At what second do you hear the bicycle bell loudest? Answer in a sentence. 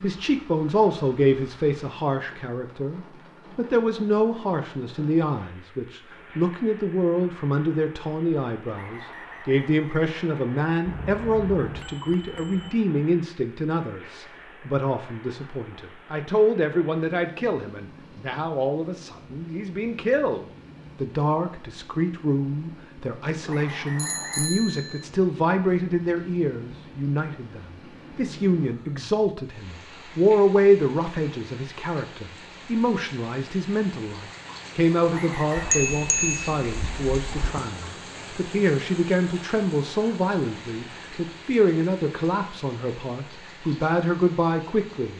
The loudest moment of the bicycle bell is at 36 seconds.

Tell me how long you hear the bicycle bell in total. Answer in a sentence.
You can hear the bicycle bell for 5 seconds altogether.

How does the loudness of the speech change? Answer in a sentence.
The loudness of the speech stays about the same.